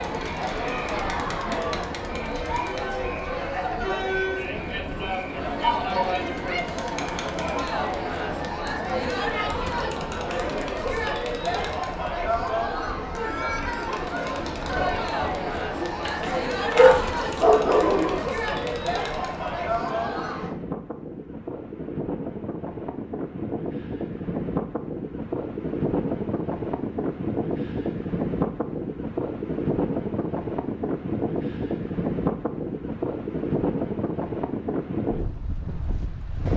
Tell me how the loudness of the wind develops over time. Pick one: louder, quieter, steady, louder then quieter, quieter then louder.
louder.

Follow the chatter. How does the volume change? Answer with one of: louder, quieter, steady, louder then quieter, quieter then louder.
steady.